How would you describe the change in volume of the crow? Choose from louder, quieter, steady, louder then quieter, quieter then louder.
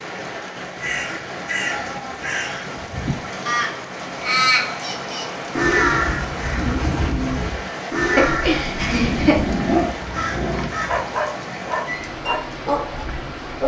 louder then quieter.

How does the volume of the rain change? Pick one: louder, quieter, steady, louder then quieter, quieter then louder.
steady.